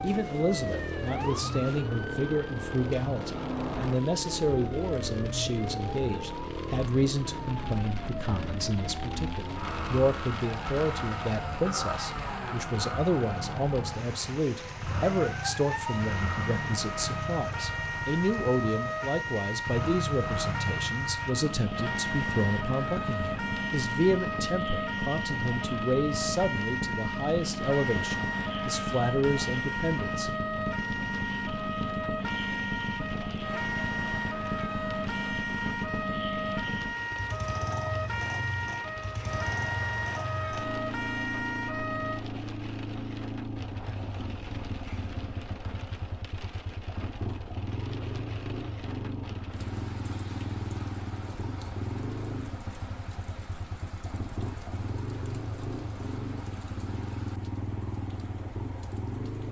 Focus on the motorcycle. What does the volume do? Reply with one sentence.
The volume of the motorcycle stays about the same.